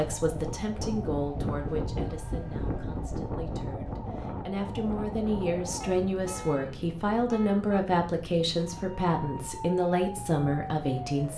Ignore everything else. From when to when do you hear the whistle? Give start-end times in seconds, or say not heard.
not heard.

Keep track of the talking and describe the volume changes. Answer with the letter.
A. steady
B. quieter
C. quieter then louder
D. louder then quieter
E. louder
C.